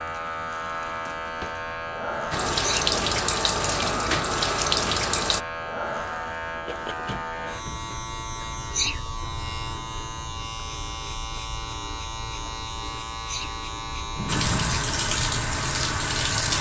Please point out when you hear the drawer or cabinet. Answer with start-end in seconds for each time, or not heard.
0.8-1.6, 6.5-7.8, 14.2-14.8.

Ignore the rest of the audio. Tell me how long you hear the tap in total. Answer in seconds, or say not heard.
5 s.